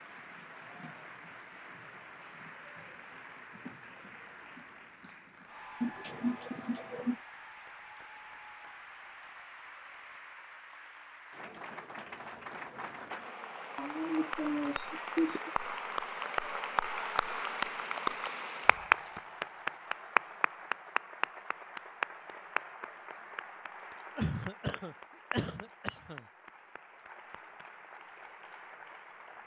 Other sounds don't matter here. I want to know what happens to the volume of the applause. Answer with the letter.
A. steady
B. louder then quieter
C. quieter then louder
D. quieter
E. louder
B.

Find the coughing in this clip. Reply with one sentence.
You can hear the coughing from 5.8 to 7.2 s, from 13.8 to 15.5 s and from 24.1 to 26.2 s.